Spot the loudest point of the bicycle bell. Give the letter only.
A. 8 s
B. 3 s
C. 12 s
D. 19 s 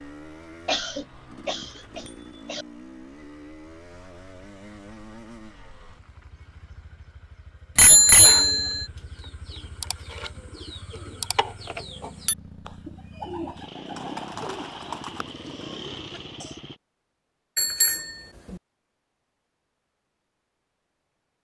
A.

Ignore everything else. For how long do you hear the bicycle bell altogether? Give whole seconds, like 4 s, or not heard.
3 s.